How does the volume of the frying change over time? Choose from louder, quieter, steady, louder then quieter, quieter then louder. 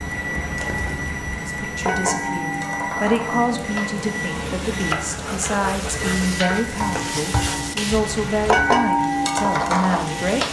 louder.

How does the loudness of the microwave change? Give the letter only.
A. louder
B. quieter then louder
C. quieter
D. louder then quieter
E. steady
C.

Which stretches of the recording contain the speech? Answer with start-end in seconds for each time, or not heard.
1.4-10.4.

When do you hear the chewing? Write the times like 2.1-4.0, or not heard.
not heard.